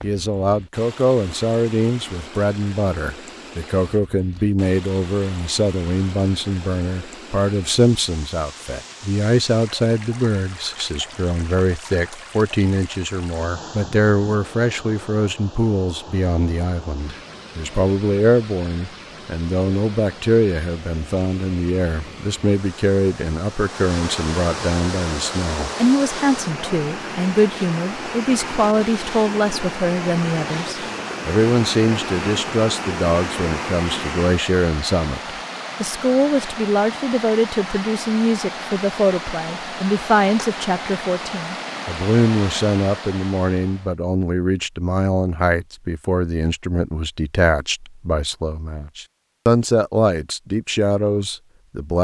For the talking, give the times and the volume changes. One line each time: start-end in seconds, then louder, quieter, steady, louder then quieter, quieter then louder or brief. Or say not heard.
0.0-51.9 steady.